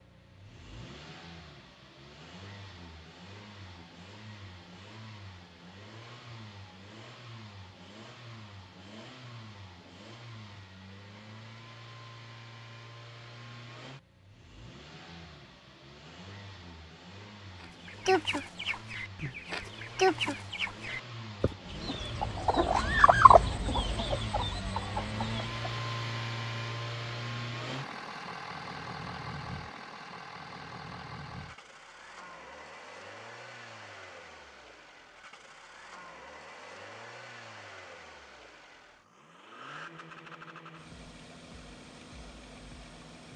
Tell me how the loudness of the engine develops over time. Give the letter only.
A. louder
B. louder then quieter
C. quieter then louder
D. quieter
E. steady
B.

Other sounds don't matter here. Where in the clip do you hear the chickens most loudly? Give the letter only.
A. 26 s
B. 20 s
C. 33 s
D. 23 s
D.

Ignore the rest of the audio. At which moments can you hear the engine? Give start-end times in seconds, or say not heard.
0.0-43.3.